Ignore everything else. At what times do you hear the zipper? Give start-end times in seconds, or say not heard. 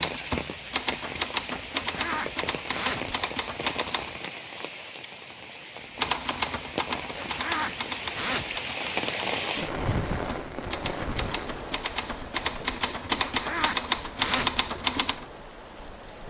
1.7-3.2, 7.1-8.6, 13.3-14.7.